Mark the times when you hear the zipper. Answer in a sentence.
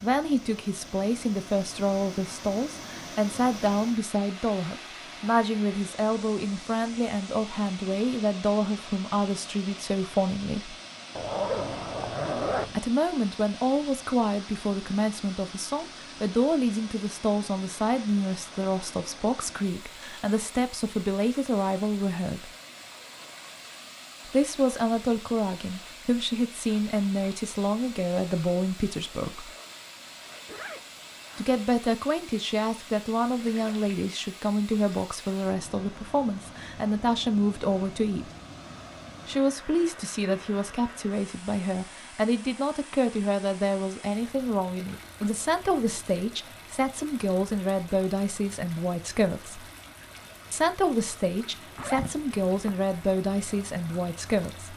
You can hear the zipper from 11.2 to 12.8 s, from 30.1 to 31.6 s and from 51.8 to 52.7 s.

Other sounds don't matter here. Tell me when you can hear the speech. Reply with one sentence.
You can hear the speech from 0.0 to 10.8 s, from 12.7 to 22.5 s, from 24.2 to 29.5 s, from 31.4 to 38.3 s, from 39.2 to 49.6 s and from 50.5 to 54.7 s.